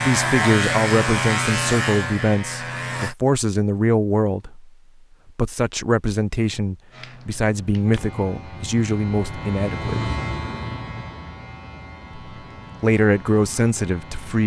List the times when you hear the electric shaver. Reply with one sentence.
The electric shaver can be heard from 0.0 to 3.1 s and from 6.9 to 14.4 s.